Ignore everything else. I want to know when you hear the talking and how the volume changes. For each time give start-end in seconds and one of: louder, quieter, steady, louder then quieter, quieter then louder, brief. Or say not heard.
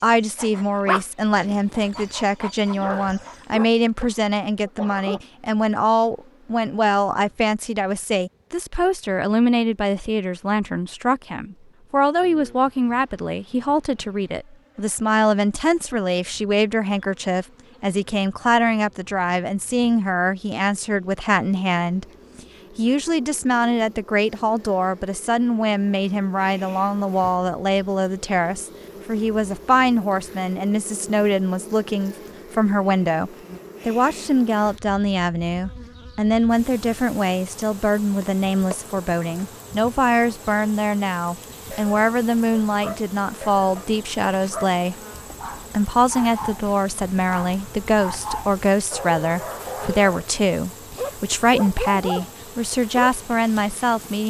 0.0-45.0 steady
45.7-54.2 steady.